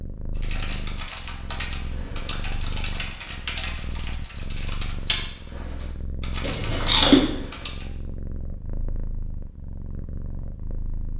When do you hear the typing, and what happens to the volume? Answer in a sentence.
The typing can be heard from 0.3 to 7.8 s, at a steady volume.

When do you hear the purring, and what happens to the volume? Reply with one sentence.
The purring can be heard from 0.0 to 11.1 s, at a steady volume.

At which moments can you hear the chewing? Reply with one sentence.
You can hear the chewing from 2.3 to 3.4 s and from 6.4 to 7.2 s.